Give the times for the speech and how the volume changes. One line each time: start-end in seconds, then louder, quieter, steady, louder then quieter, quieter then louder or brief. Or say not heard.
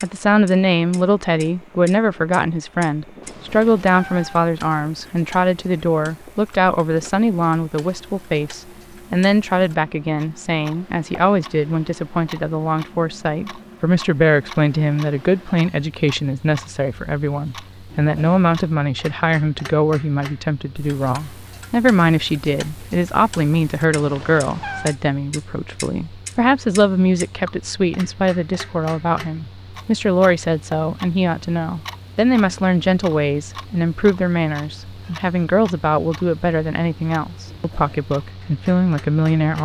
0.0-39.6 steady.